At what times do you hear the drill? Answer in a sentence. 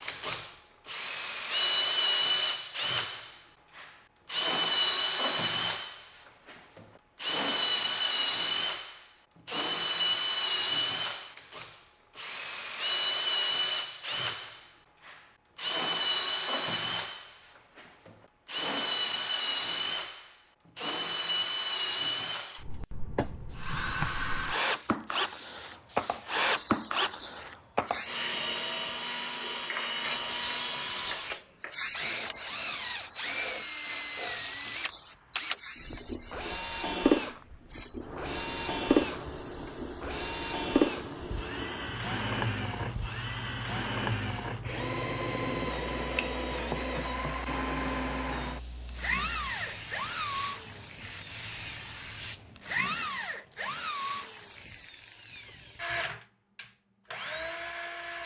The drill can be heard from 0.0 to 58.2 s.